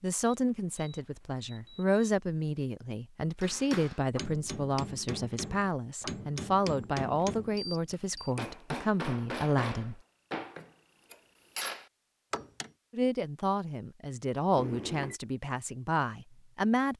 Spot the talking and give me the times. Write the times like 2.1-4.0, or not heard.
0.0-10.0, 12.9-16.9.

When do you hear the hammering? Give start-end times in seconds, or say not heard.
3.4-12.7.